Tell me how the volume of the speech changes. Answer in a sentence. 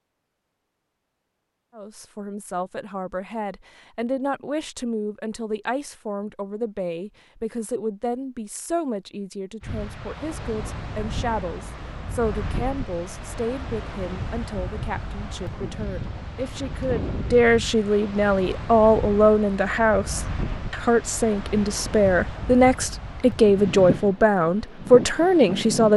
The loudness of the speech goes up.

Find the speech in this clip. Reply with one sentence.
The speech can be heard from 1.8 to 25.9 s.